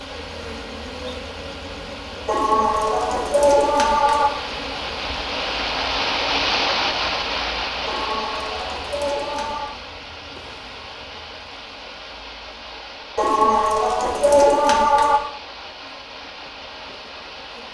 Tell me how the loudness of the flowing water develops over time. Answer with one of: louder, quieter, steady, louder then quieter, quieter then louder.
louder then quieter.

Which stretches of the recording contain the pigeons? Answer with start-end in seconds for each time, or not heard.
2.2-4.3, 7.8-9.8, 13.2-15.2.